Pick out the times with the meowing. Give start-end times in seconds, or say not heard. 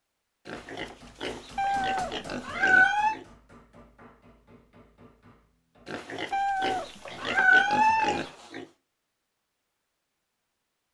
1.6-3.1, 6.3-8.2.